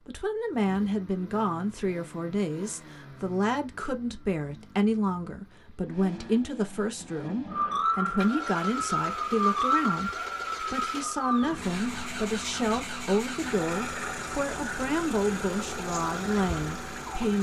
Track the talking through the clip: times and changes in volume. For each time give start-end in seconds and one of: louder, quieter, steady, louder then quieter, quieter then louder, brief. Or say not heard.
0.1-17.3 steady.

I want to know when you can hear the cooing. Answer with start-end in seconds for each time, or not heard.
not heard.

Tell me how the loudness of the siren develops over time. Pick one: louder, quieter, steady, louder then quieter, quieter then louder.
quieter.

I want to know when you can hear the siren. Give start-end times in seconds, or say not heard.
7.5-17.3.